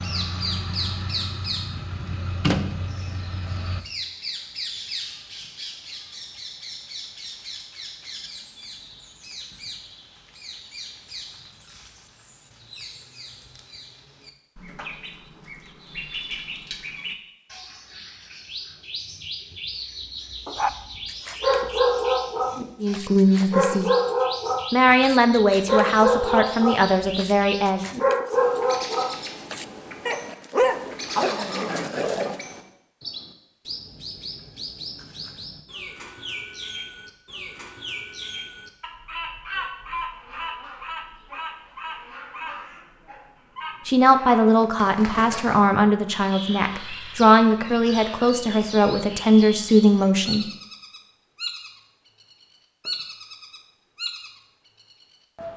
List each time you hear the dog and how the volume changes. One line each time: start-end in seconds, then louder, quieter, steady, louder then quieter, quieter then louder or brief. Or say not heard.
20.4-32.4 steady.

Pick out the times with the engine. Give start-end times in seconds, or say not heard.
0.0-3.9.